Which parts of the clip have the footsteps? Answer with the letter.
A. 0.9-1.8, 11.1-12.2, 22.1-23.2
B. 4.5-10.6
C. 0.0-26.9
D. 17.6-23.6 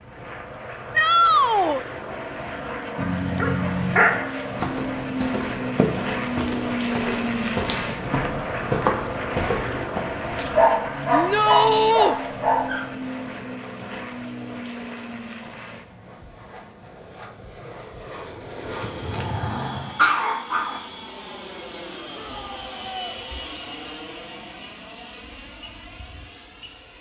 B.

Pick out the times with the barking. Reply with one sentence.
The barking can be heard from 3.0 to 4.2 s, from 10.6 to 12.8 s and from 18.8 to 20.8 s.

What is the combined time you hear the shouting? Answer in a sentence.
You can hear the shouting for 3 seconds altogether.